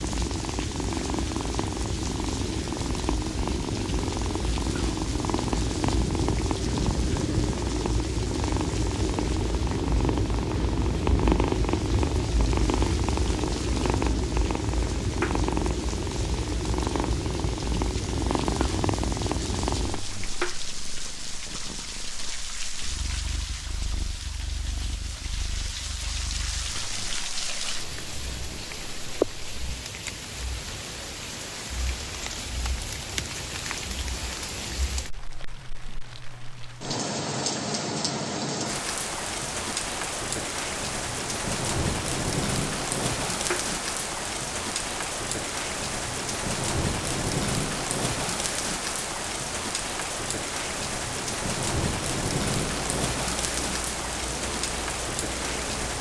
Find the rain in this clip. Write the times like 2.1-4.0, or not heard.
0.0-55.9.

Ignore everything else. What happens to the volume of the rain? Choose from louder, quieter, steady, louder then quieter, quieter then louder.
louder.